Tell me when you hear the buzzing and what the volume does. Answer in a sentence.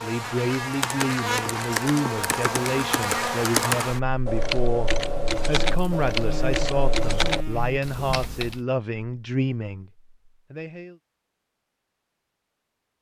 You can hear the buzzing from 0.0 to 7.8 s, getting quieter then louder.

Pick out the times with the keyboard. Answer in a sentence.
You can hear the keyboard from 0.7 to 8.6 s.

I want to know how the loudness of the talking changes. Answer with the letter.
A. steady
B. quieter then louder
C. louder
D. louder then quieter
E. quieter
A.